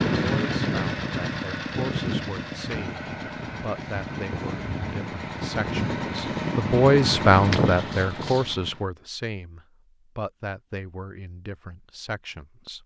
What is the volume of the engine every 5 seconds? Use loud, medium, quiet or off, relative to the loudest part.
loud, loud, off.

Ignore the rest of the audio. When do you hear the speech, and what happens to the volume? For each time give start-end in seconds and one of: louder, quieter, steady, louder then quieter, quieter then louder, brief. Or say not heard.
0.1-12.8 louder then quieter.